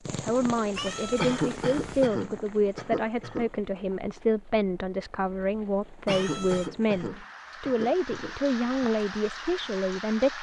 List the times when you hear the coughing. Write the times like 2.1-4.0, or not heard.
1.1-3.5, 6.0-8.7.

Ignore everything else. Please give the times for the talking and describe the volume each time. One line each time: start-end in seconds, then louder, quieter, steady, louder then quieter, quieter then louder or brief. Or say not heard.
0.1-10.3 steady.